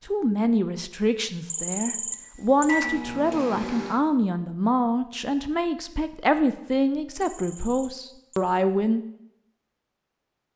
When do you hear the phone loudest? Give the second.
2 s.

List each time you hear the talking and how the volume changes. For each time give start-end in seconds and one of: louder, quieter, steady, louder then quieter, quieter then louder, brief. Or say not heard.
0.1-9.0 steady.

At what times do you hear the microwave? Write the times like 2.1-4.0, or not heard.
2.6-4.0.